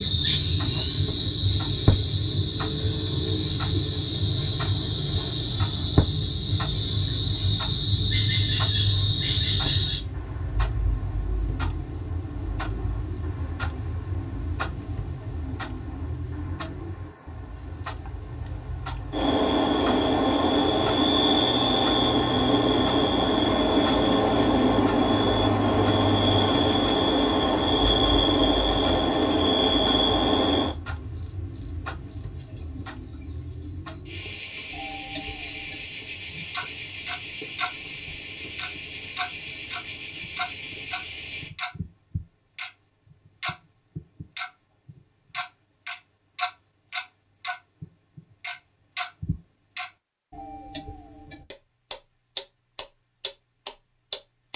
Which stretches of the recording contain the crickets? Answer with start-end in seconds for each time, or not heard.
0.0-41.5.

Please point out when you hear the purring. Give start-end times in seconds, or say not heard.
not heard.